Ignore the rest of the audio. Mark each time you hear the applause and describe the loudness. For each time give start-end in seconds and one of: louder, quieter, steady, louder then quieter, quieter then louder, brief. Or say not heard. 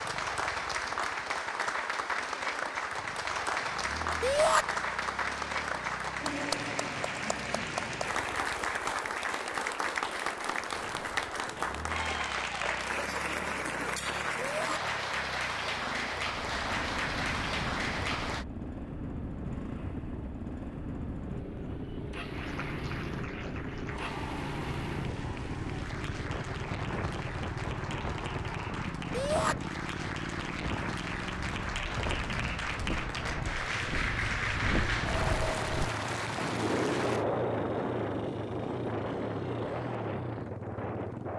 0.0-18.4 steady
22.3-37.2 louder.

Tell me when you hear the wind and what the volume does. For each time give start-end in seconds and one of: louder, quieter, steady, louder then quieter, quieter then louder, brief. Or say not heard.
16.2-41.3 louder.